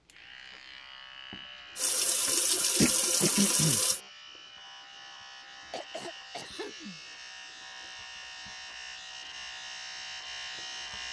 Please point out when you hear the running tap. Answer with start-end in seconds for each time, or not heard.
1.8-4.0.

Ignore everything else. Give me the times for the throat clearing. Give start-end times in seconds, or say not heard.
2.8-3.8, 5.7-7.0.